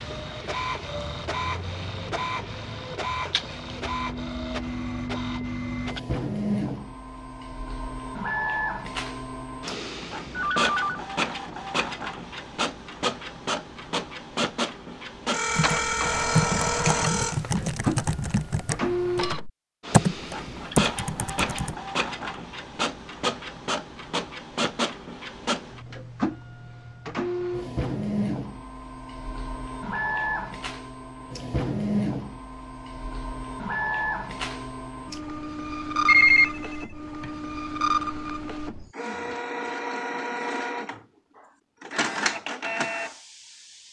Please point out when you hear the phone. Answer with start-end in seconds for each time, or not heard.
10.6-11.0, 15.3-17.4, 36.0-37.3.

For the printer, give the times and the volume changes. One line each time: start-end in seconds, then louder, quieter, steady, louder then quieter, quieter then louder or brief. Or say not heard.
0.0-43.8 steady.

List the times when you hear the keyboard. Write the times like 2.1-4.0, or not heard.
15.6-21.8.